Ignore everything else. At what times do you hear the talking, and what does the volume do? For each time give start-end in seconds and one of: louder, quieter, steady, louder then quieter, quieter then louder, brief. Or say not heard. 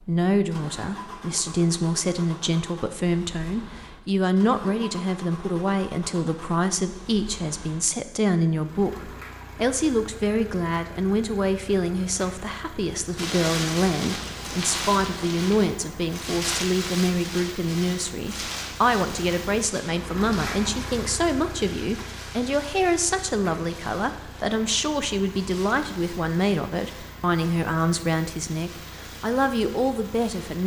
0.0-30.6 steady.